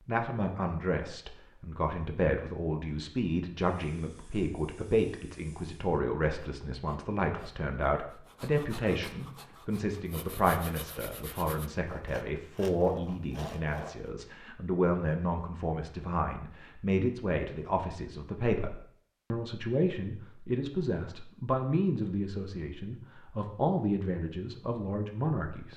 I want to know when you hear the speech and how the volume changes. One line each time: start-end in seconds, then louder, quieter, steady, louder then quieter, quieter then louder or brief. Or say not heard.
0.1-25.7 steady.